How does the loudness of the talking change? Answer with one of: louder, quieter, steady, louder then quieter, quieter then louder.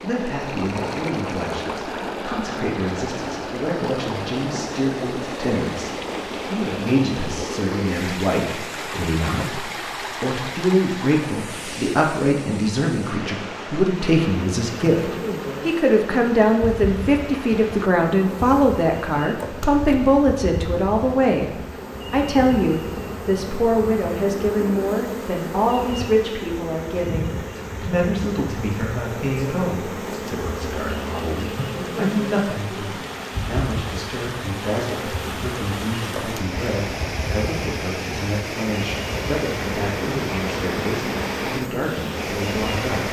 louder then quieter.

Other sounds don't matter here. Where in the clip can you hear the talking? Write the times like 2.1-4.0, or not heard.
0.0-43.0.